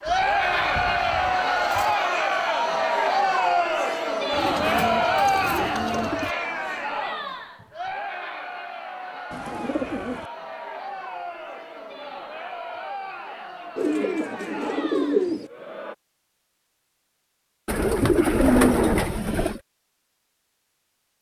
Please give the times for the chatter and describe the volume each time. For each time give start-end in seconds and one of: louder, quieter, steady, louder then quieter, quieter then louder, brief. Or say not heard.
0.0-15.9 quieter.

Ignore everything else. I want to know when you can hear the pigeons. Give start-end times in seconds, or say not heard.
0.1-1.9, 4.3-6.3, 9.3-10.3, 13.8-15.5, 17.6-19.6.